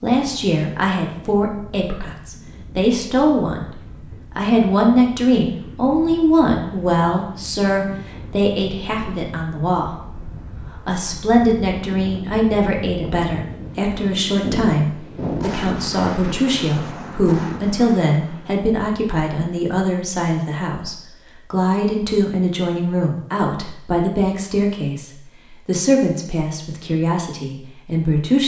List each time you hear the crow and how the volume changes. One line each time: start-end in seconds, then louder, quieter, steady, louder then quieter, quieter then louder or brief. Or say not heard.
not heard.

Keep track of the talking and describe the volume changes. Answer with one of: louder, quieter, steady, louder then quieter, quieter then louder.
steady.